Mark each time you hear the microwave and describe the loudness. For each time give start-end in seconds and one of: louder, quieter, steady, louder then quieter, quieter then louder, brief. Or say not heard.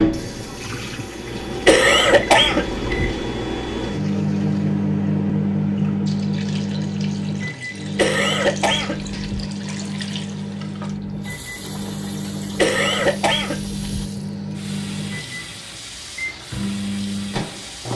0.0-17.9 louder then quieter.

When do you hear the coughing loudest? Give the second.
2 s.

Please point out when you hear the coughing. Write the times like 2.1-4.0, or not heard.
1.6-3.1, 8.0-9.4, 12.6-14.1.